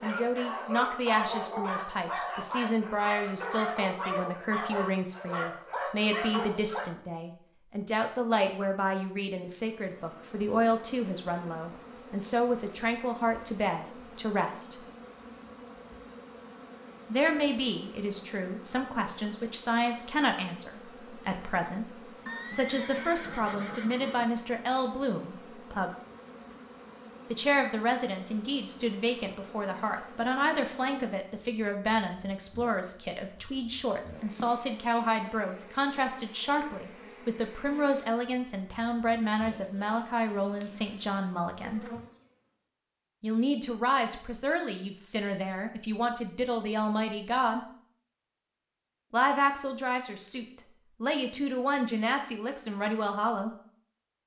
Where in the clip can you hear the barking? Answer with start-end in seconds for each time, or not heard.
0.0-6.9.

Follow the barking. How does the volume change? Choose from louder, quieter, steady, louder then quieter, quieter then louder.
steady.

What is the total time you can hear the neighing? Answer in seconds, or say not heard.
2 s.